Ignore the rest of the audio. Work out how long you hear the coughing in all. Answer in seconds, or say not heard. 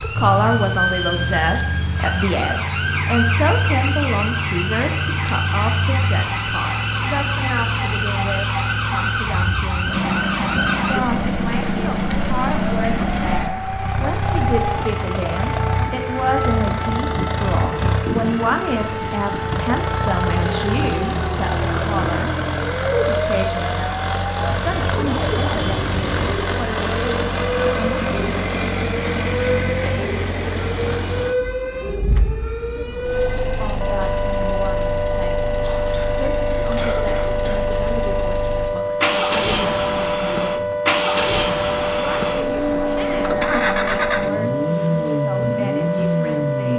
2 s.